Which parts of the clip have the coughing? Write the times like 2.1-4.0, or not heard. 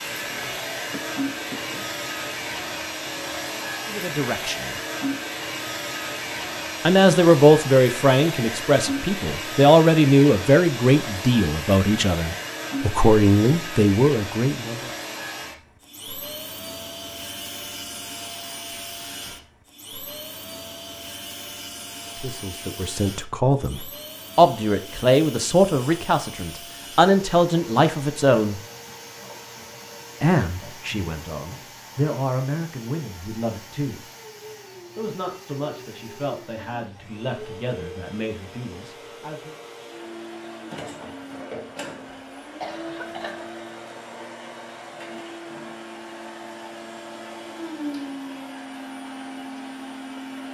0.9-1.9, 42.1-43.5.